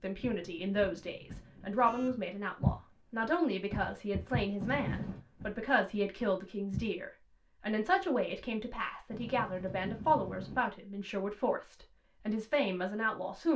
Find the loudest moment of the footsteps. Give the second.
3 s.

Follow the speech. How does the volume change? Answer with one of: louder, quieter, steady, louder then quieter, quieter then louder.
steady.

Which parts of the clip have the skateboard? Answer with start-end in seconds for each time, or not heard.
not heard.